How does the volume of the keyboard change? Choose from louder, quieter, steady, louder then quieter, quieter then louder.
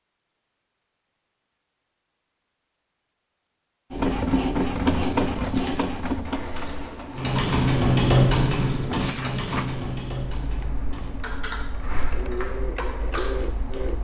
louder then quieter.